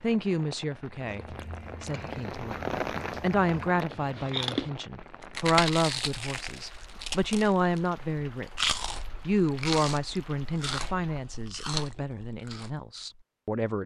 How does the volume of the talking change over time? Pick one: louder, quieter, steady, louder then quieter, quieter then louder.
louder then quieter.